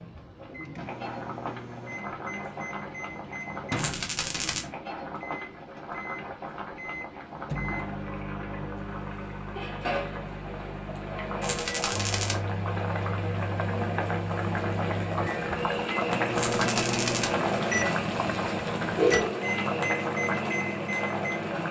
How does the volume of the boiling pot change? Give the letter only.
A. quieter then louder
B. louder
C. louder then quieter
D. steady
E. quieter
B.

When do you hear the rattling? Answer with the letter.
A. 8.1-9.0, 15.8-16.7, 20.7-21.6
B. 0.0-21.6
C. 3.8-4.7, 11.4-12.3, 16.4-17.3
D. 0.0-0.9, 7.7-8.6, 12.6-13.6
C.